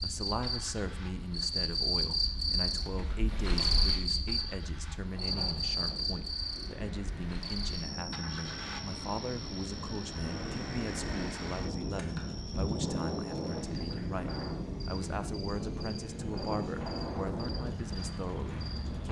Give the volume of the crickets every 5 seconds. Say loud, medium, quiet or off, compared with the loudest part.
loud, medium, quiet, quiet.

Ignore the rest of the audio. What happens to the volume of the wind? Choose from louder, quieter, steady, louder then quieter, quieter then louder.
louder.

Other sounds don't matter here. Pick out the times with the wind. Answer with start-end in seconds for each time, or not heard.
5.1-19.0.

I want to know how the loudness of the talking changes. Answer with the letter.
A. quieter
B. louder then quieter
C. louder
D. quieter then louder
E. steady
E.